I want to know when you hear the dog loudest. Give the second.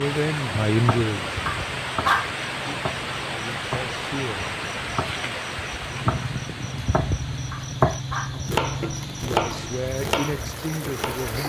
2 s.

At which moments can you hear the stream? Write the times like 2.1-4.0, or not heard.
0.0-11.4.